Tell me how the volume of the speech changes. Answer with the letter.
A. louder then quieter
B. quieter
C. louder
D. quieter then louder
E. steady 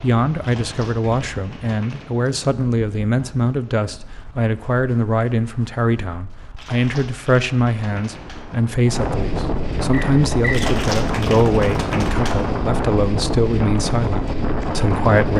E.